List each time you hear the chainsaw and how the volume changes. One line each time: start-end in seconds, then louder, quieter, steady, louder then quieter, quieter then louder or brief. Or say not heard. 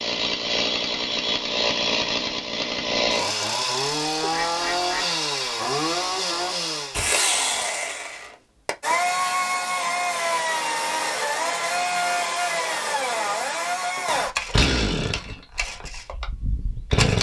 0.0-17.1 steady.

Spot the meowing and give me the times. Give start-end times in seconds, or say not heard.
not heard.